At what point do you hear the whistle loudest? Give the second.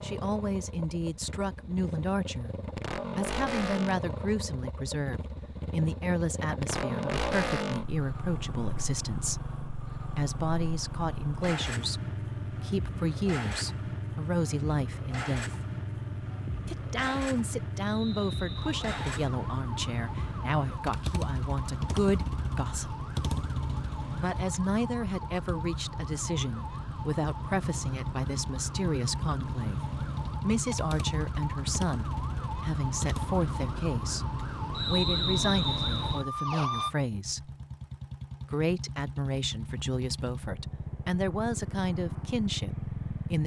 35 s.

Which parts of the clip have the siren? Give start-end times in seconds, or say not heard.
18.6-37.0.